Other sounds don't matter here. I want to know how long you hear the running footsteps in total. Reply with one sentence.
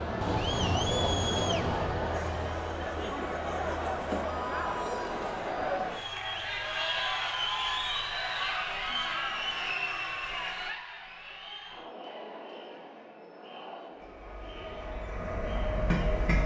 The running footsteps can't be heard in this clip.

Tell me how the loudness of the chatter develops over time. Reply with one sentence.
The loudness of the chatter goes down.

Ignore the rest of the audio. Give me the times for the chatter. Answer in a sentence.
The chatter can be heard from 0.0 to 16.3 s.